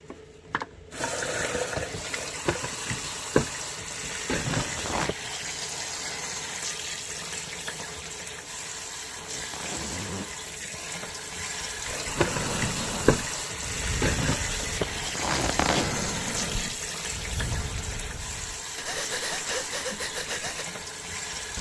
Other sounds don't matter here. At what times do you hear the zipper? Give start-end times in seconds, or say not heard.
4.5-5.2, 9.0-10.3, 14.8-15.9.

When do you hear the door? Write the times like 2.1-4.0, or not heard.
not heard.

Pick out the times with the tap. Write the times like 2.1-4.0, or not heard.
0.0-21.5.